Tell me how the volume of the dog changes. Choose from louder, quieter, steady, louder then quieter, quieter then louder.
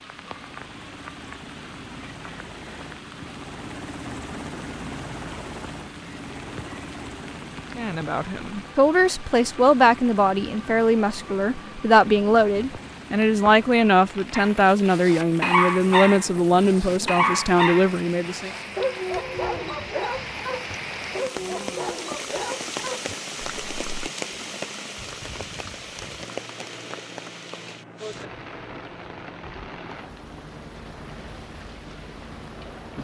quieter.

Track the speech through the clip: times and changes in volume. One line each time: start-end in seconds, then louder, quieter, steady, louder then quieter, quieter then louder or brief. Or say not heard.
7.8-18.5 steady.